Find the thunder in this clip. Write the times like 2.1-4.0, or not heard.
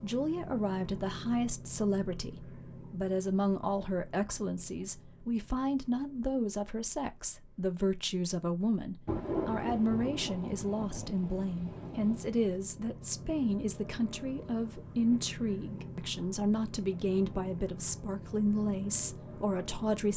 9.1-12.4.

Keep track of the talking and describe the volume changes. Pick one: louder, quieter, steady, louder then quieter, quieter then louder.
steady.